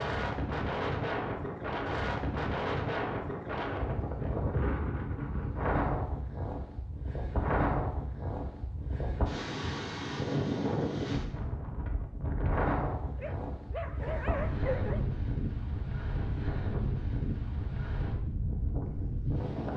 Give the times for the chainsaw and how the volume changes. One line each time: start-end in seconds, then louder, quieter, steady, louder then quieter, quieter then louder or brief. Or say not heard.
not heard.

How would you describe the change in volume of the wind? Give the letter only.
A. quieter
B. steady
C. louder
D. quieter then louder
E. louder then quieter
B.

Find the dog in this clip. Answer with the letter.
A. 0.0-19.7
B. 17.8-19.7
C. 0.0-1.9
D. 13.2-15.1
D.